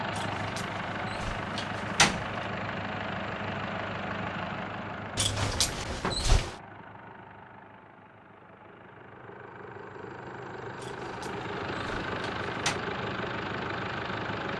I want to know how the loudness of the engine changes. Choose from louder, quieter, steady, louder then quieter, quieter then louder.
quieter then louder.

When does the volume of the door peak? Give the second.
2 s.